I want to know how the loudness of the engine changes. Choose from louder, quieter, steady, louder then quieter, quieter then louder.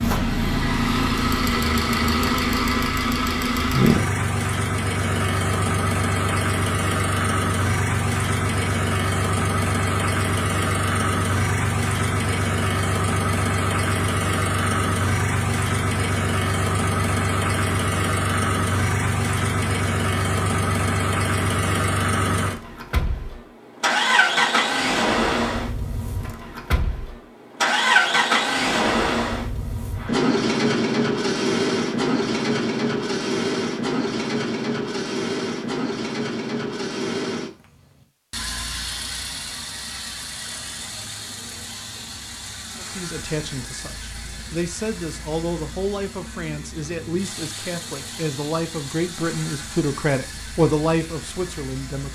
quieter.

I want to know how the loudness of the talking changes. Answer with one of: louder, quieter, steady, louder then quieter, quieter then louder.
louder.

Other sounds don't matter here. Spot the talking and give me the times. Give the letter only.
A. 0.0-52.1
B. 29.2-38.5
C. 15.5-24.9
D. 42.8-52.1
D.